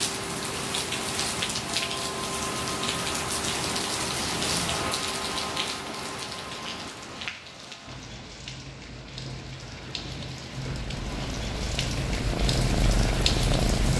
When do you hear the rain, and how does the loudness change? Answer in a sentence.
The rain can be heard from 0.0 to 13.9 s, getting quieter then louder.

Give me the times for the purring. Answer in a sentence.
The purring can be heard from 10.7 to 13.9 s.